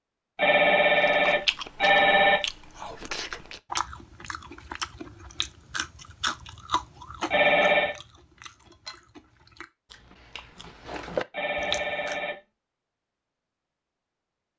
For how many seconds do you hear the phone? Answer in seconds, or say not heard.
4 s.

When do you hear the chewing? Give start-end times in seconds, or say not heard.
0.9-12.2.